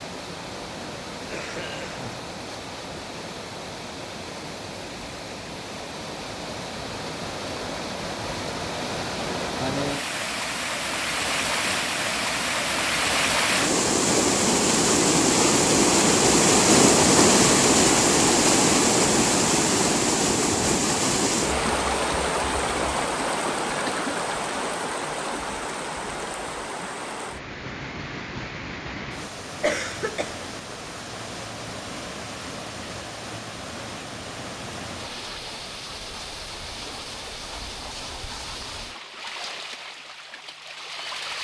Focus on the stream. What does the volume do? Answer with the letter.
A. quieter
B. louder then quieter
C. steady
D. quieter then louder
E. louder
B.